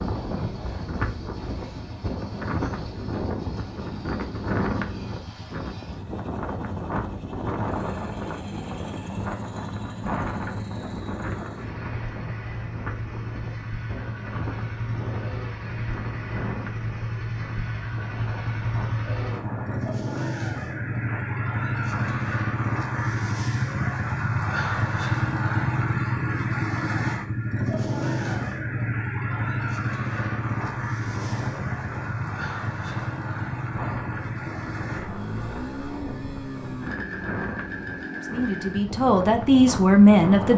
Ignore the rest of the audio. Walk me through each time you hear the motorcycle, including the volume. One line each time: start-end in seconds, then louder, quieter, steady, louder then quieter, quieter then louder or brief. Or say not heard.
0.0-40.2 louder then quieter.